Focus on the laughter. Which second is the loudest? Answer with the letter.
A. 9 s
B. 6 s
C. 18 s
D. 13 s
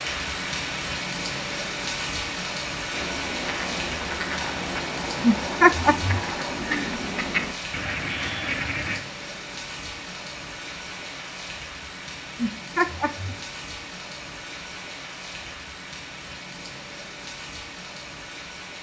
B.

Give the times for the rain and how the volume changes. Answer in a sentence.
The rain can be heard from 0.0 to 18.7 s, getting quieter.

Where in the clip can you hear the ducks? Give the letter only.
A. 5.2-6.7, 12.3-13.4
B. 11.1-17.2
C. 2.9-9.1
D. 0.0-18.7
C.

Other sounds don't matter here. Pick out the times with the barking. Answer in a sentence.
You can't hear the barking here.